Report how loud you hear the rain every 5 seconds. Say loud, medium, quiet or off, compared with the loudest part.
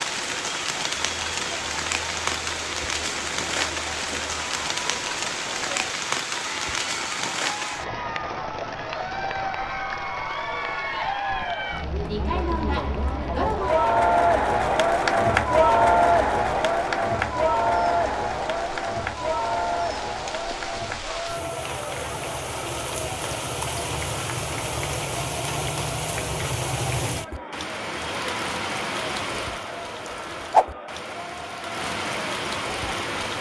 loud, loud, quiet, quiet, medium, loud, loud.